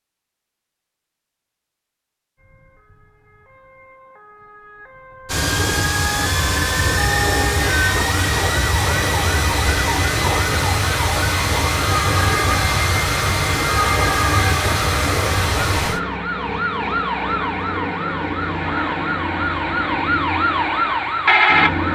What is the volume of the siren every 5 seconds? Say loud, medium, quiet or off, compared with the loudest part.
quiet, medium, medium, medium, loud.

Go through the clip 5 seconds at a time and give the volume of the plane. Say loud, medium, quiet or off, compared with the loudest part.
off, loud, loud, medium, medium.